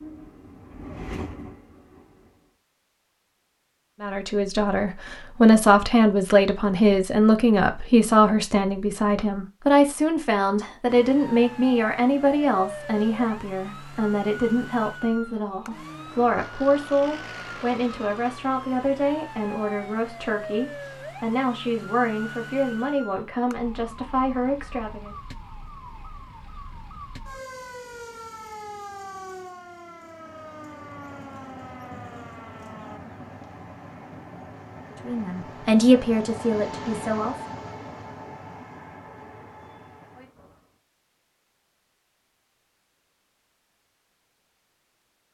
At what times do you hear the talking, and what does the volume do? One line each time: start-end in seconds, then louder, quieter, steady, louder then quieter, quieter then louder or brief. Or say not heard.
4.0-25.1 quieter
35.0-37.5 brief.